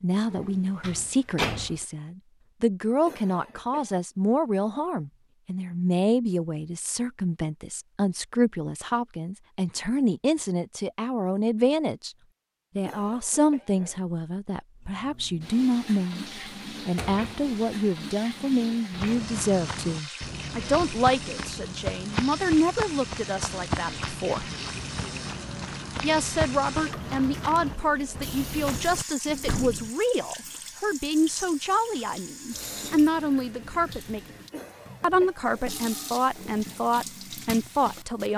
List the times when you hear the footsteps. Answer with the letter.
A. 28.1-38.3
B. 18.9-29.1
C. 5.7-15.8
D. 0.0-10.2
B.